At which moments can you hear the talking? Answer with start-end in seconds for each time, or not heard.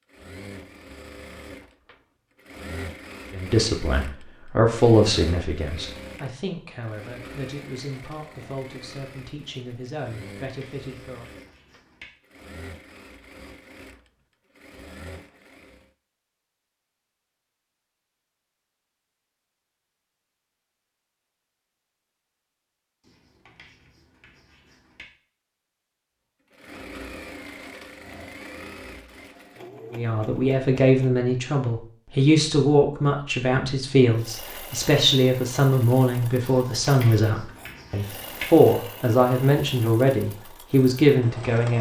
3.3-11.2, 29.9-41.7.